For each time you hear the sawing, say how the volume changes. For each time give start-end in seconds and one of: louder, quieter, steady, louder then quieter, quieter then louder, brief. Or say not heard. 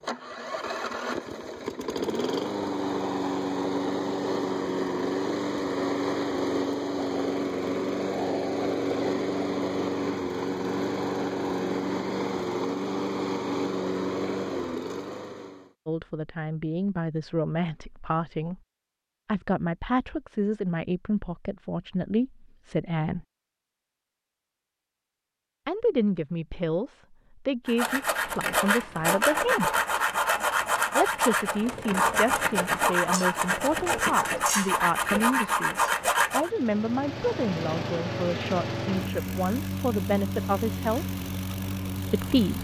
27.6-36.5 steady.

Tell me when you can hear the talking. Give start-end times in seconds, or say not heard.
15.8-18.6, 19.2-23.2, 25.6-29.7, 30.9-41.0, 42.1-42.6.